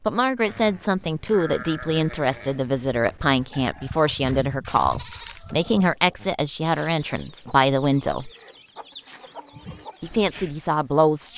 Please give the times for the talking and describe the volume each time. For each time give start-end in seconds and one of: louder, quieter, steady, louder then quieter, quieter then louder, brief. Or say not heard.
0.0-8.3 steady
10.0-11.3 brief.